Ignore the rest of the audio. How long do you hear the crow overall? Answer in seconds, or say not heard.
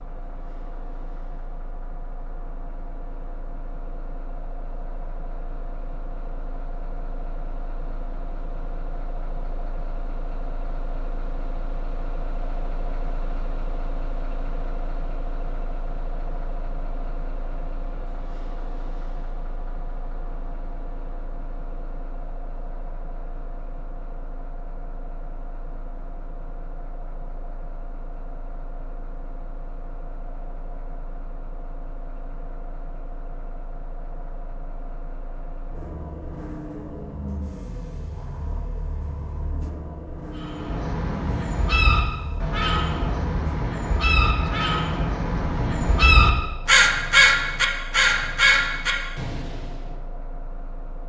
9 s.